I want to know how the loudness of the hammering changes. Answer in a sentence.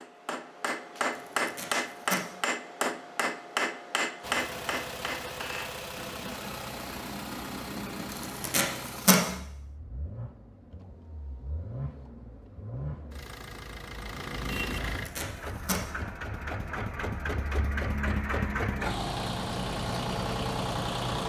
The volume of the hammering goes down.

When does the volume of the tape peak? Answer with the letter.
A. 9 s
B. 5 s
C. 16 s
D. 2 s
A.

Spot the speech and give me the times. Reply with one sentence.
You can't hear the speech here.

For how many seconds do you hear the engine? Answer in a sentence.
You can hear the engine for 17 seconds altogether.